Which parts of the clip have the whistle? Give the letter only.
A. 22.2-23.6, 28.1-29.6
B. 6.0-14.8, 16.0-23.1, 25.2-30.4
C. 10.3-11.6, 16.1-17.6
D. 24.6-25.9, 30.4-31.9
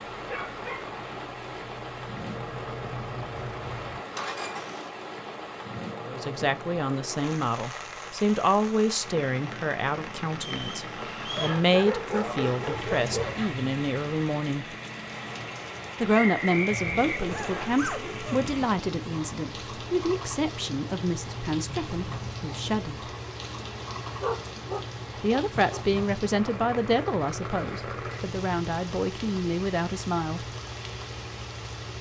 C.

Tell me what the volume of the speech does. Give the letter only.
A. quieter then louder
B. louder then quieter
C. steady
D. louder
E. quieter
C.